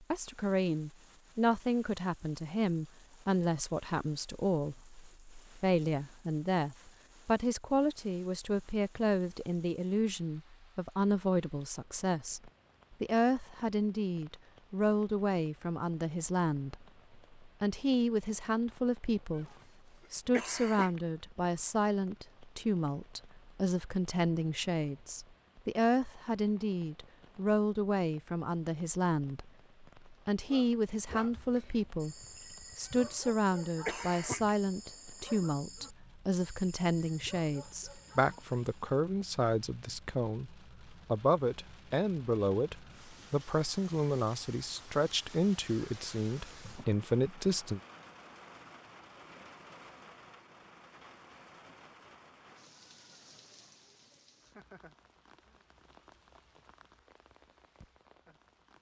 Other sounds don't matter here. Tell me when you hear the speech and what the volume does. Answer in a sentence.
The speech can be heard from 0.0 to 19.5 s, at a steady volume; from 20.1 to 32.1 s, at a steady volume; and from 32.8 to 47.8 s, at a steady volume.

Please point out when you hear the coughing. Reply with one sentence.
You can hear the coughing from 19.4 to 21.0 s and from 32.9 to 34.5 s.